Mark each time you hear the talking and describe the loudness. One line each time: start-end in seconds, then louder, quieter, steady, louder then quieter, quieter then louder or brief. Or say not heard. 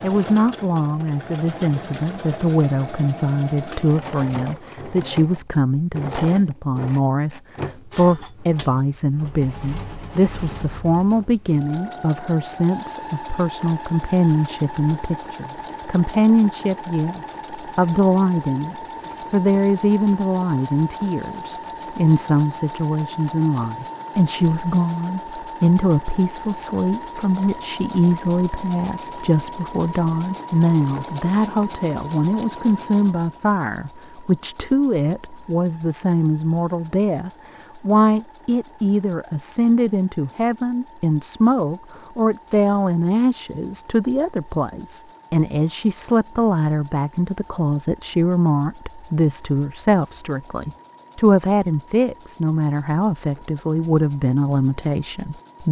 0.0-55.6 steady.